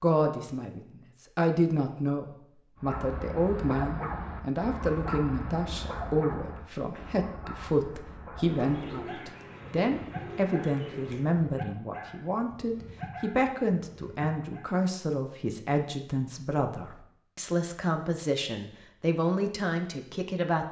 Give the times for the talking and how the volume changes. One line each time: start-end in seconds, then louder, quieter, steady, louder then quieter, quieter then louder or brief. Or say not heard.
0.0-20.6 steady.